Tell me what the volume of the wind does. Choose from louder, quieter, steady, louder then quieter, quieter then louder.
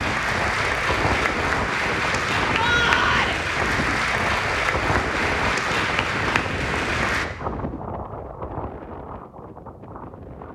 quieter.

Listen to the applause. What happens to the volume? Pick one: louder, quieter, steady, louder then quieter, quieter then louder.
steady.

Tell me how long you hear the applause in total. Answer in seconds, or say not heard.
7 s.